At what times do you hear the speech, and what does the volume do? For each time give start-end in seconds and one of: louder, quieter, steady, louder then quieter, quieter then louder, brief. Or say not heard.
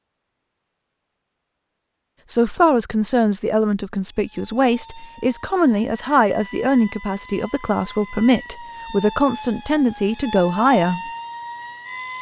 2.3-11.1 steady.